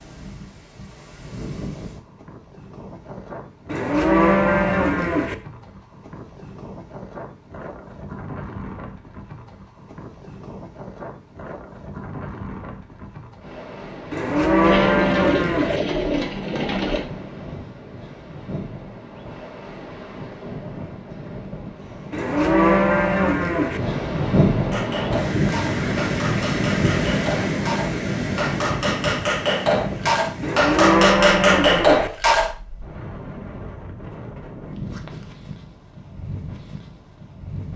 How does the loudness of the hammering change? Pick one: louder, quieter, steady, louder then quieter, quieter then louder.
louder.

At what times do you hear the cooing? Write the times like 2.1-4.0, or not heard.
14.6-17.1.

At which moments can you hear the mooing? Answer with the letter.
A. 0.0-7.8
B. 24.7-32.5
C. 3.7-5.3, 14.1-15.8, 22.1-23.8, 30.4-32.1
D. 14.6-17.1
C.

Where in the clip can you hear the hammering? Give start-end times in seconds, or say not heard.
24.7-32.5.